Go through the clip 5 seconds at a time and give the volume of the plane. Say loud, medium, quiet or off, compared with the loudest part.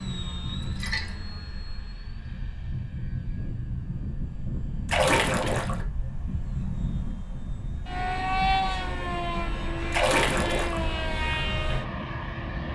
medium, loud, loud.